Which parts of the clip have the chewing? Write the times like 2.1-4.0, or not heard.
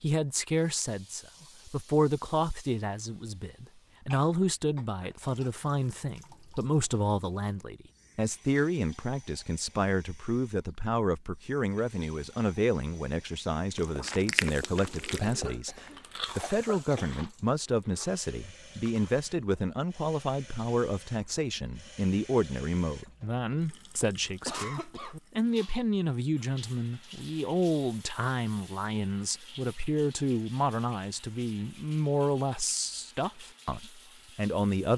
13.8-19.2.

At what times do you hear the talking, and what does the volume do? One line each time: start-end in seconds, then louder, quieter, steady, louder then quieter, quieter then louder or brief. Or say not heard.
0.0-34.9 steady.